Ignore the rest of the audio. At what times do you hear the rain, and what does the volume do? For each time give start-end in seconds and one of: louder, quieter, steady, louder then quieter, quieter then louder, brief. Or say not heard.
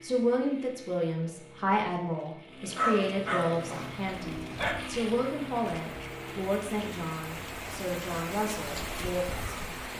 3.6-9.9 louder.